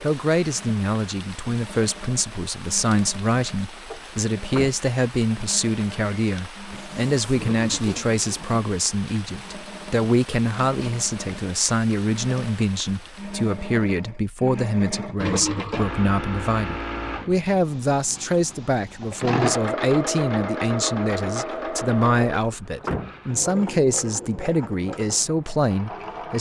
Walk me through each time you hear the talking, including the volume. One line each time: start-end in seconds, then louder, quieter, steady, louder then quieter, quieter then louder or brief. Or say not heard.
0.0-26.3 steady.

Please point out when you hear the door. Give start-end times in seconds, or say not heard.
3.9-4.8, 22.4-23.2.